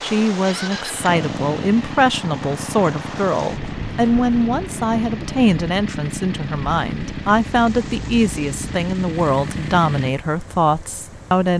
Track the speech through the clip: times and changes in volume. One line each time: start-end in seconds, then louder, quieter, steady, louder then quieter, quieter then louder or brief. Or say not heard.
0.0-11.5 steady.